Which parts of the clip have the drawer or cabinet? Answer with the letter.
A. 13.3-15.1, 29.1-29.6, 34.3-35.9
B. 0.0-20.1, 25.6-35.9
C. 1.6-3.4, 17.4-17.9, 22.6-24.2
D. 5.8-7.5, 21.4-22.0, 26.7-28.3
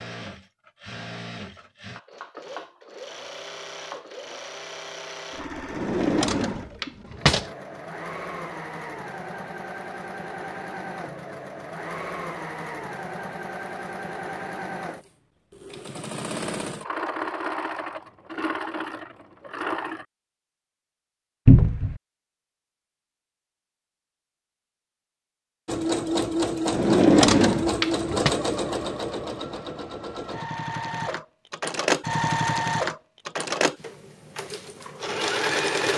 D.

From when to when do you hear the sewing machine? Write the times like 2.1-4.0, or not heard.
0.0-20.1, 25.6-35.9.